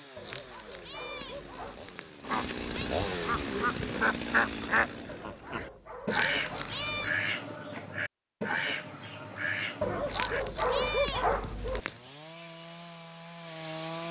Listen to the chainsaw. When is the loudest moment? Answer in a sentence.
The loudest moment of the chainsaw is at 3 seconds.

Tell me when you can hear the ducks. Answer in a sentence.
You can hear the ducks from 2.2 to 11.1 s.